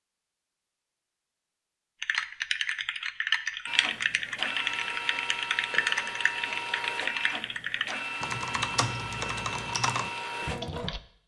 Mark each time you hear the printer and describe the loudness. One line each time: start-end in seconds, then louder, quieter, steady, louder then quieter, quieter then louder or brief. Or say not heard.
3.6-11.2 steady.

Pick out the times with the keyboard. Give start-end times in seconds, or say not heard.
2.0-11.0.